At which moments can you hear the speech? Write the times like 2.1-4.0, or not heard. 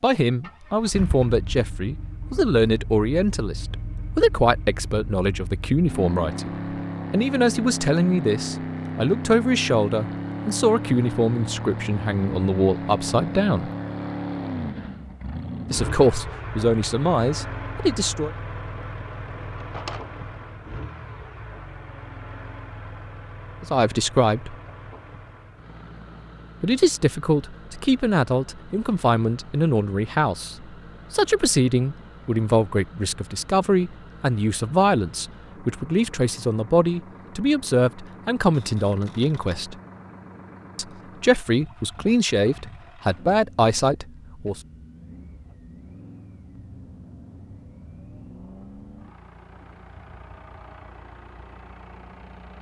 0.0-13.7, 15.7-18.3, 23.6-24.6, 26.6-39.8, 40.8-44.6.